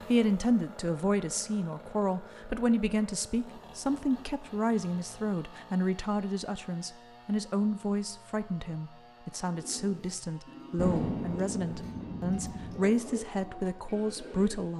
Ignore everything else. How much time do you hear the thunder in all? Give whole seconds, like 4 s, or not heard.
2 s.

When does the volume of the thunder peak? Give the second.
11 s.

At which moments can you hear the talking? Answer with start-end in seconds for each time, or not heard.
0.1-14.7.